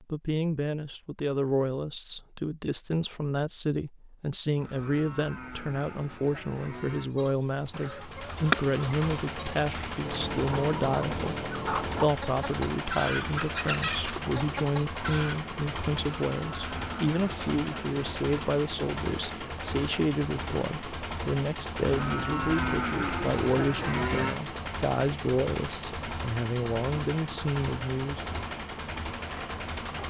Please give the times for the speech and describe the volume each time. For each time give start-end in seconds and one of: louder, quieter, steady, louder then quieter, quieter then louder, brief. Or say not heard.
0.0-28.2 steady.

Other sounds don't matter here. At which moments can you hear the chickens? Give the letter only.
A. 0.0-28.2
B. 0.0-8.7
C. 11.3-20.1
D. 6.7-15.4
D.